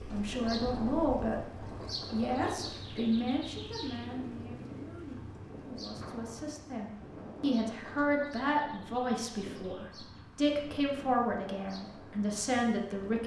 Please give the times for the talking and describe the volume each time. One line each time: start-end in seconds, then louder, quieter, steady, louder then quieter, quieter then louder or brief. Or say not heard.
0.1-1.5 brief
2.1-13.2 quieter then louder.